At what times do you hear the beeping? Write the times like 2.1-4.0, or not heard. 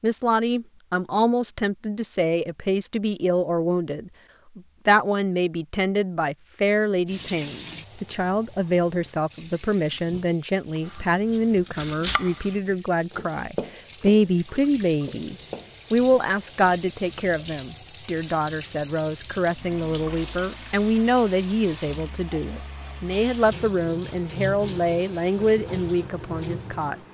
not heard.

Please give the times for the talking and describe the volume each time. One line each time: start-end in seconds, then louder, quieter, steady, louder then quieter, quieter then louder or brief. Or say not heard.
0.0-26.9 steady.